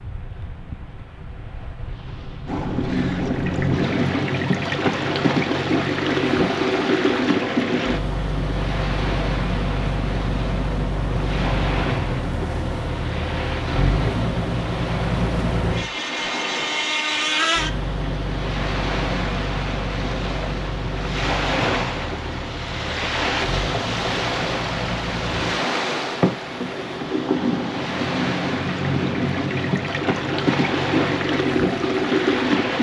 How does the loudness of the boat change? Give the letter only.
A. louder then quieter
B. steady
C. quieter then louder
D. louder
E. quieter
C.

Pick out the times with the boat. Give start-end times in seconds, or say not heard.
2.5-32.7.